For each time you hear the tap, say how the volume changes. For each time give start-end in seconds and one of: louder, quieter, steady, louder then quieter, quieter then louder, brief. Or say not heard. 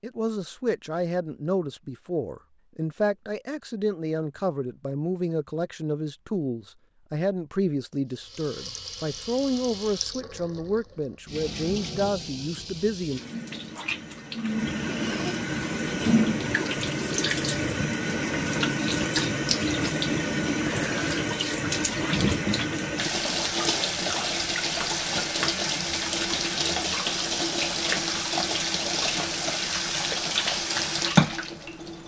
8.1-32.0 louder.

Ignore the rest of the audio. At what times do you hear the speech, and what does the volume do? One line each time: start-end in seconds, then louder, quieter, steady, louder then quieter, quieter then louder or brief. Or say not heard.
0.0-13.2 steady.